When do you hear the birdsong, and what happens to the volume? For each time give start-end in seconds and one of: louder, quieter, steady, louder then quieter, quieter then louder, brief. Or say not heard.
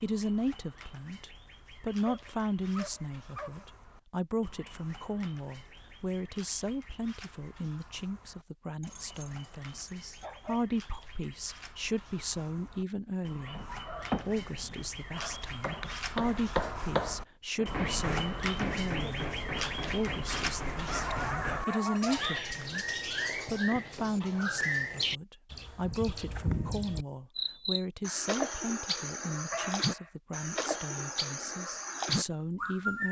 0.0-33.0 louder.